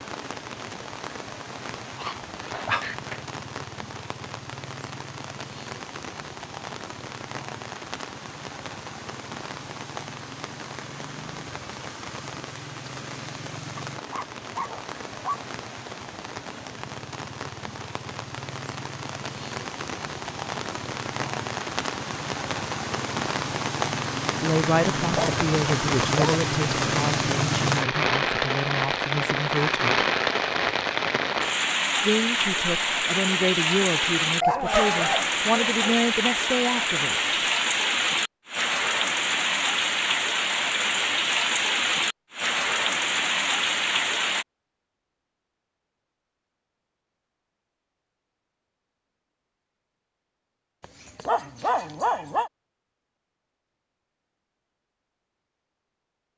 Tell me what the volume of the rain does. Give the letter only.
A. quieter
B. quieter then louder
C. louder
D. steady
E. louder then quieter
C.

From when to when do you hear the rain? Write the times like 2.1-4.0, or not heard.
0.0-44.5.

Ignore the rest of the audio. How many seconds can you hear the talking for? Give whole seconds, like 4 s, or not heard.
11 s.